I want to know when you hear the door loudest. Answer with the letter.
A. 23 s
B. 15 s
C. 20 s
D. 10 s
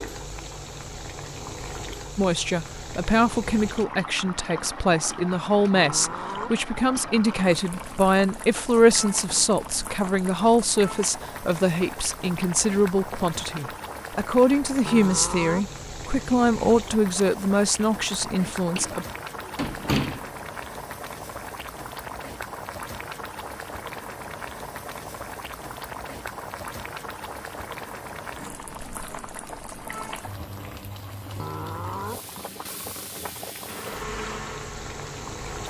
C.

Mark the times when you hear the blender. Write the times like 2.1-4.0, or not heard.
33.6-35.6.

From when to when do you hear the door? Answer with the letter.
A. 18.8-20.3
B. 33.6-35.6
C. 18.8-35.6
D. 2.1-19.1
A.